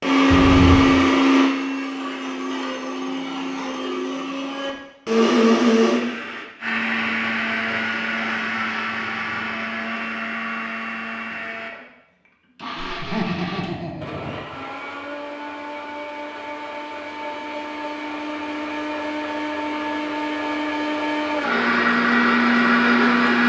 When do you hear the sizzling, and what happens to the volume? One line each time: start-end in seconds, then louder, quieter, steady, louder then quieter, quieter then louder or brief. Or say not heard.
not heard.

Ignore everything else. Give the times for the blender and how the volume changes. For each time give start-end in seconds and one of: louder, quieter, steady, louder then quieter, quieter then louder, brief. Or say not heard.
0.0-23.4 quieter then louder.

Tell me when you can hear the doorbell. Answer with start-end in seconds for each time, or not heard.
0.3-0.9.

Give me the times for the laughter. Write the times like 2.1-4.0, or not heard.
12.9-14.4.